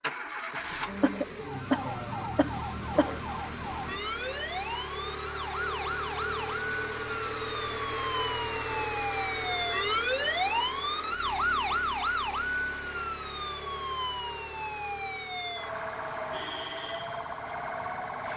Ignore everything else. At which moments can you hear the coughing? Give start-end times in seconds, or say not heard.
0.5-3.2.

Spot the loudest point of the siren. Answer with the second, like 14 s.
10 s.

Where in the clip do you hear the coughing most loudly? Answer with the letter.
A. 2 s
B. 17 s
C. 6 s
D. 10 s
A.